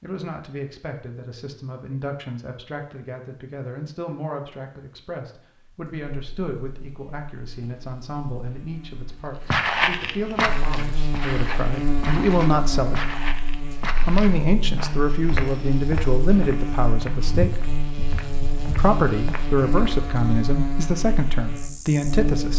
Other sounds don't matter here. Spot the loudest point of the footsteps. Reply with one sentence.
The loudest moment of the footsteps is at 10 seconds.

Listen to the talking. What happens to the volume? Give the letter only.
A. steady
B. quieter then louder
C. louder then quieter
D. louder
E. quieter
D.